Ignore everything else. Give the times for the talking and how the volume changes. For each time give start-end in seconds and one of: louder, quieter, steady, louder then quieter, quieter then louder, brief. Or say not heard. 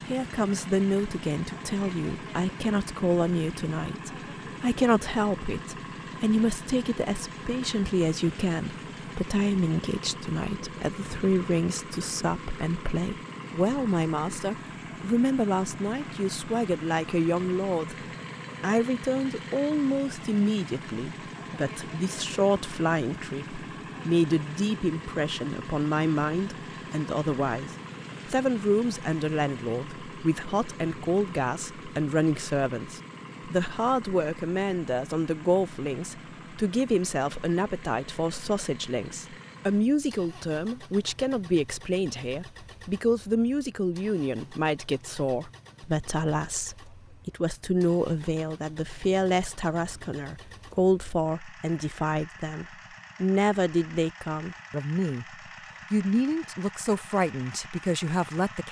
0.1-17.9 steady
18.6-55.2 steady
55.9-58.6 brief.